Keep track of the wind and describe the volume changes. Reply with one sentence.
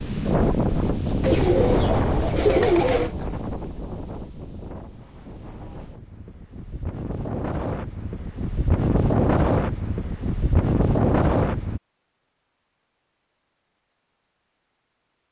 The volume of the wind goes down, then up.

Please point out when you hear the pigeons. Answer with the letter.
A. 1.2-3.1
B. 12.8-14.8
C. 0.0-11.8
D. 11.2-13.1
A.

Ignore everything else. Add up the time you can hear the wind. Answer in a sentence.
The wind can be heard for 12 seconds in total.